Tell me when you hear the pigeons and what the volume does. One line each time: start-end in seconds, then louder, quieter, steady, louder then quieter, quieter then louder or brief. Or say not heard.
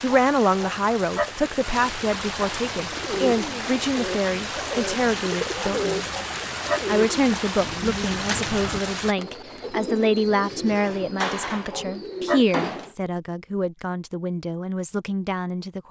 2.9-12.9 steady.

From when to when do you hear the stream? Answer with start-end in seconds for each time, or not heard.
0.0-9.2.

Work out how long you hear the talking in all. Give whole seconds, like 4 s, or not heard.
15 s.